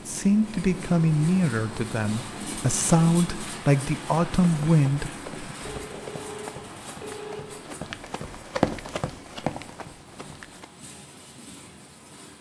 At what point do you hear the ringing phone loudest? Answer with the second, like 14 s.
7 s.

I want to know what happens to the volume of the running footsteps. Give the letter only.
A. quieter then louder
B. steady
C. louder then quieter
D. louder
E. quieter
C.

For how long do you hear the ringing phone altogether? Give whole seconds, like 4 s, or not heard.
2 s.